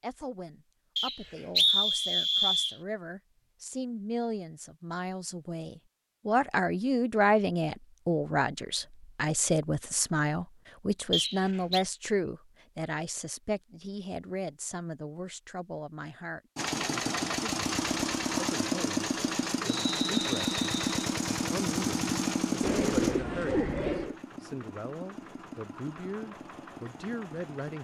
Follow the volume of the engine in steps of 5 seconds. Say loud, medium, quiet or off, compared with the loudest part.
off, off, off, loud, loud, quiet.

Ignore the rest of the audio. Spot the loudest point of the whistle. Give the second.
2 s.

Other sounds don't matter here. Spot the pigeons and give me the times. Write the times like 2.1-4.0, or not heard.
22.6-24.1.